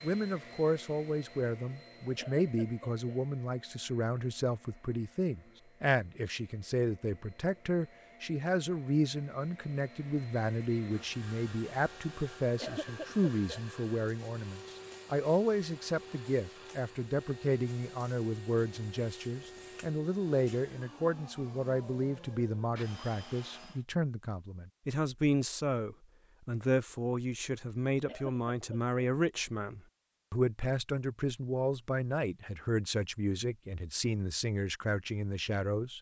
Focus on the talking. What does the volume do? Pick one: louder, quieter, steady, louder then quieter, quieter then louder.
steady.